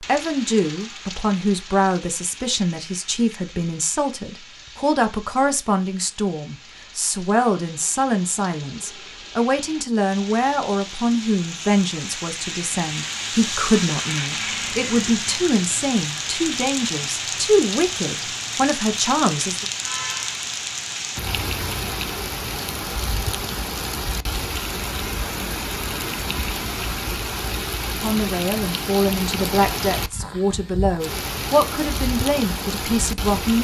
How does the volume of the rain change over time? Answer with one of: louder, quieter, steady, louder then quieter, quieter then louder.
louder.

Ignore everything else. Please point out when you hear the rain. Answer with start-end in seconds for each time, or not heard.
0.0-33.5.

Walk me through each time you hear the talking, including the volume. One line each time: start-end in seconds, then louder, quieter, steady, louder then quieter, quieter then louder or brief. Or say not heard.
0.0-19.6 steady
27.9-33.5 steady.